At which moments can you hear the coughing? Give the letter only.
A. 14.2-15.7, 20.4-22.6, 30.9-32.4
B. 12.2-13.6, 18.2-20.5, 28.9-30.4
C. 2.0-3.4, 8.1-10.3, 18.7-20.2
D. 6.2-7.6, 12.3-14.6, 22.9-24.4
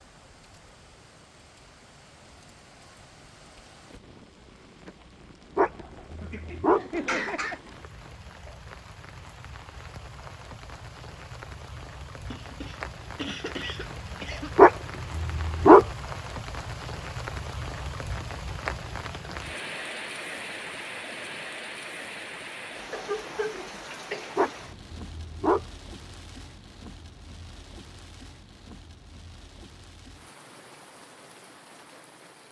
D.